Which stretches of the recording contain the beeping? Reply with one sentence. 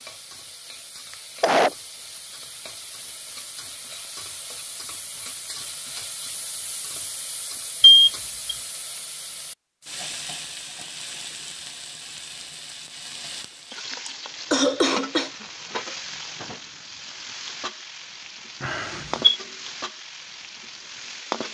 You can hear the beeping from 7.8 to 8.6 s and from 18.6 to 19.4 s.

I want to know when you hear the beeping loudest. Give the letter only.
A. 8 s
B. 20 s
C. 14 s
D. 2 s
A.